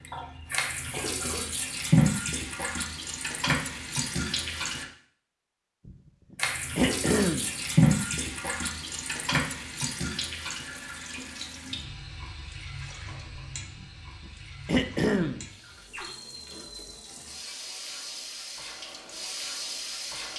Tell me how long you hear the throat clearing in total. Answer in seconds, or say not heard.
3 s.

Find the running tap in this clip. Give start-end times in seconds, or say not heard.
0.0-4.8, 6.3-20.3.